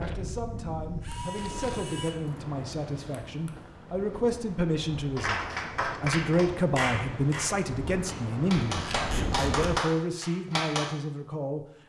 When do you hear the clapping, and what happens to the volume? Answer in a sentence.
The clapping can be heard from 5.2 to 10.9 s, getting quieter then louder.